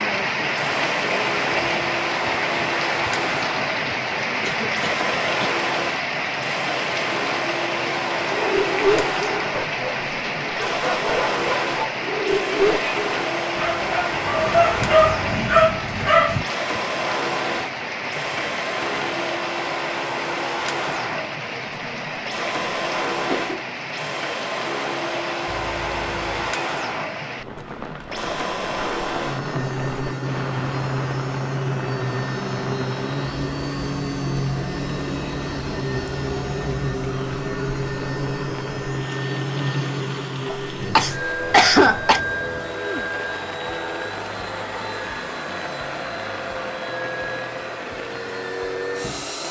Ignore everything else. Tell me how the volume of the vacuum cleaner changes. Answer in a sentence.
The loudness of the vacuum cleaner stays about the same.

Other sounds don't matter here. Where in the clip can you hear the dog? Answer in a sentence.
You can hear the dog from 8.2 to 16.4 s.